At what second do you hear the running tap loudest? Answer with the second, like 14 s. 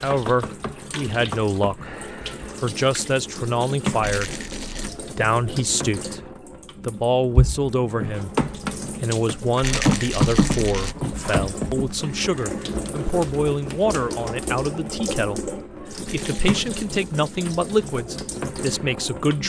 10 s.